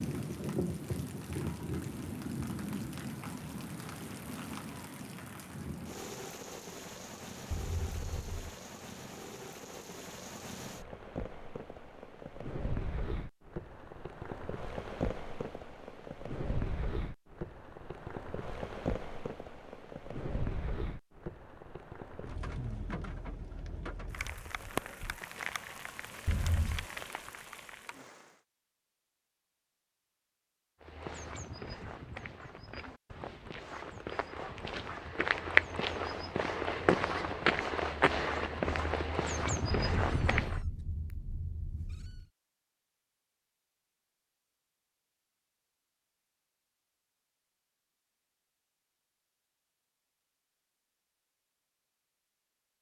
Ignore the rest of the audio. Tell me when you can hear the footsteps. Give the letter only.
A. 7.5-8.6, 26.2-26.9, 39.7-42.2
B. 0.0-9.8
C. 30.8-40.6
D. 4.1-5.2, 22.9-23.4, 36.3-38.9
C.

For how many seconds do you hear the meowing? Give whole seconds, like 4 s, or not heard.
4 s.